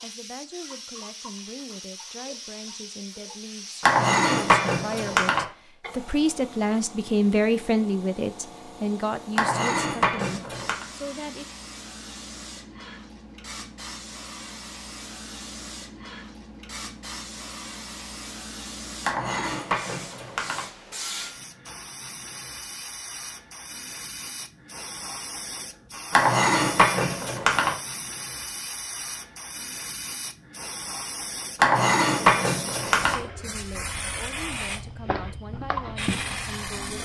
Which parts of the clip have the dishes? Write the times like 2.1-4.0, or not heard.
3.8-5.5, 9.3-10.8, 19.0-20.6, 26.1-27.8, 31.6-33.1.